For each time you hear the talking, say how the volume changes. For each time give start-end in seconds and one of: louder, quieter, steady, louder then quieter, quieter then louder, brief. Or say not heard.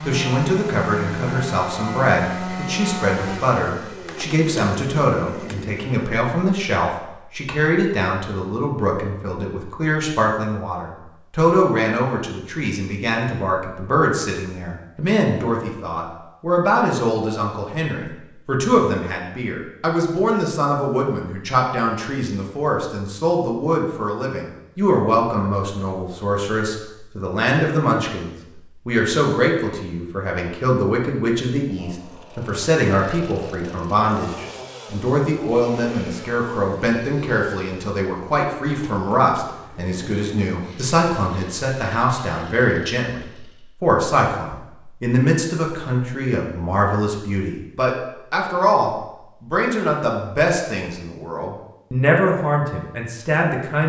0.0-53.8 steady.